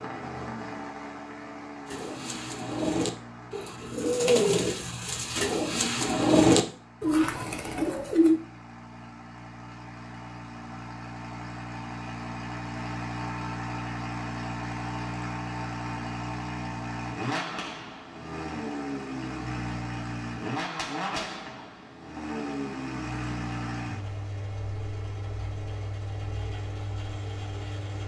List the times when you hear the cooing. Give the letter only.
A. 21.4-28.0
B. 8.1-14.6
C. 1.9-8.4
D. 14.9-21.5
C.